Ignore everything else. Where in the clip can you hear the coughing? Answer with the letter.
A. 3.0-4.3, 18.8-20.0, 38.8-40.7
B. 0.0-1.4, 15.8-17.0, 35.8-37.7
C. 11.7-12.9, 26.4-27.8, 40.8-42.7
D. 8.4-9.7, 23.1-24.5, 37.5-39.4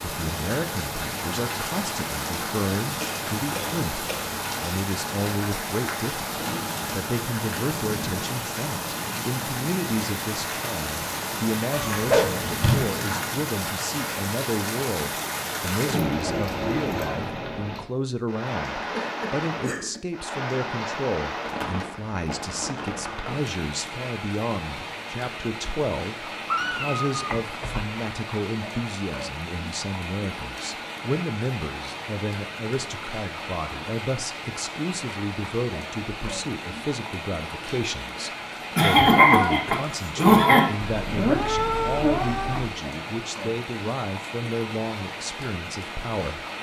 A.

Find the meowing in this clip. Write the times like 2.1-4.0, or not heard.
11.7-12.9, 26.4-27.8, 40.8-42.7.